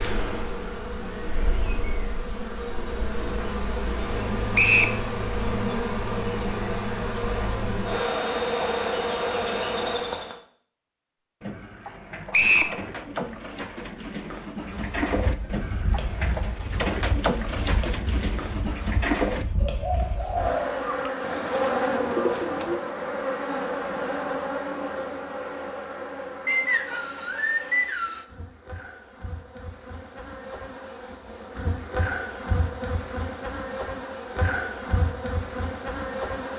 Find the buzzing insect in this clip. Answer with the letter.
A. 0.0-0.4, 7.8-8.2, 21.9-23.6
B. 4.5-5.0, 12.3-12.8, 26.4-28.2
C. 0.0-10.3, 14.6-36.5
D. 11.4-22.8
C.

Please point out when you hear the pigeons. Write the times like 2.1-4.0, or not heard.
11.4-22.8.